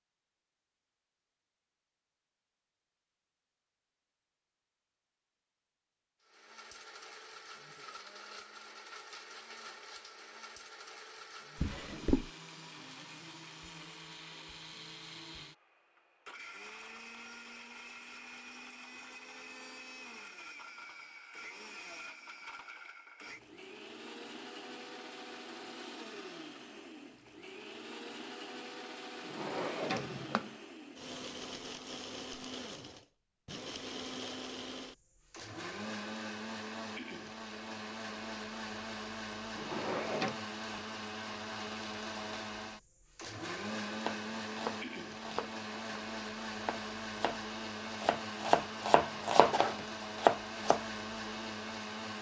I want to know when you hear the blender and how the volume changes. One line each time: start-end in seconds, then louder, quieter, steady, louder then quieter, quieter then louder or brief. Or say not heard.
6.2-52.1 louder.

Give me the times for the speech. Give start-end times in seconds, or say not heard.
not heard.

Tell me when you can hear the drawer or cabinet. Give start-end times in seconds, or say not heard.
11.6-12.3, 29.2-30.5, 39.5-40.4.